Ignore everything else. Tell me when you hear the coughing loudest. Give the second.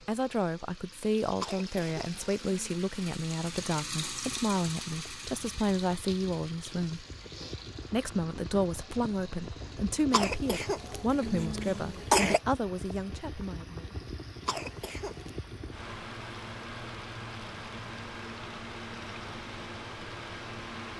12 s.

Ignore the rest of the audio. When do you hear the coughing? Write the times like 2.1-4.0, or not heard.
1.4-2.8, 10.1-12.4, 14.4-15.3.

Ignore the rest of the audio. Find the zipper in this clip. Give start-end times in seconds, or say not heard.
not heard.